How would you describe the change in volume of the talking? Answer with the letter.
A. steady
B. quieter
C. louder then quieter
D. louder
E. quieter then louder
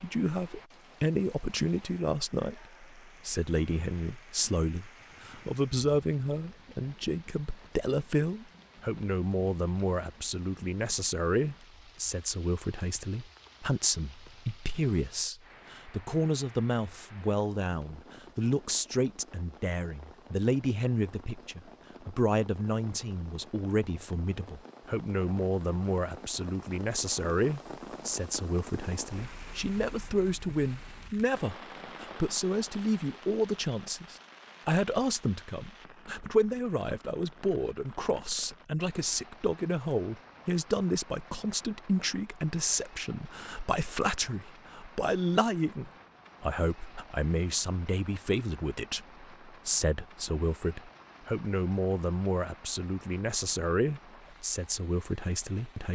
A.